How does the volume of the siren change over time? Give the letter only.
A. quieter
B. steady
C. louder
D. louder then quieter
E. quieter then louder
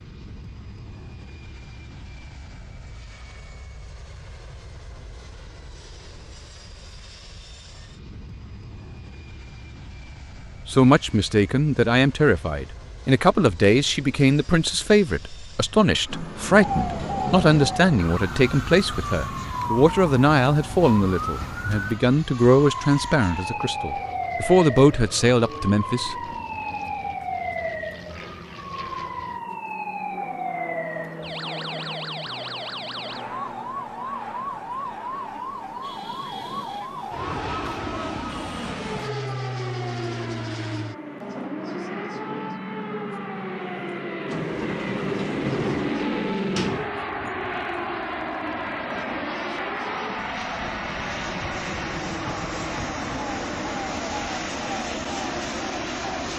A.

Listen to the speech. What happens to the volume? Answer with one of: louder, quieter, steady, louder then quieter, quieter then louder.
steady.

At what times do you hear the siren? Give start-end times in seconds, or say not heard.
16.5-56.3.